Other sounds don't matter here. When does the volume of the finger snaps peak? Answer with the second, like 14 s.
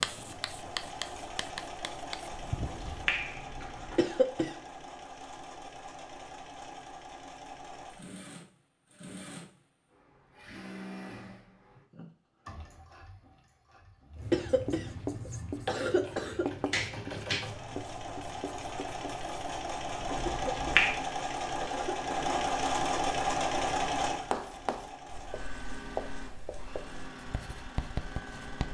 21 s.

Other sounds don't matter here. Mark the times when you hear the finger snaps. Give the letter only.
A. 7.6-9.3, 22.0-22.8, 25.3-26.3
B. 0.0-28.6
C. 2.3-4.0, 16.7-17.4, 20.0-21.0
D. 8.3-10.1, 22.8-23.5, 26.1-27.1
C.